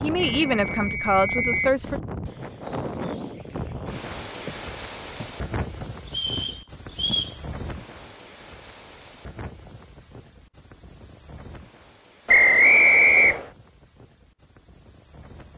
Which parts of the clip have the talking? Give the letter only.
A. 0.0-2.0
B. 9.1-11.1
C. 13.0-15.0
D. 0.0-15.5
A.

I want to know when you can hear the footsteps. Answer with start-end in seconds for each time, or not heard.
1.9-7.3.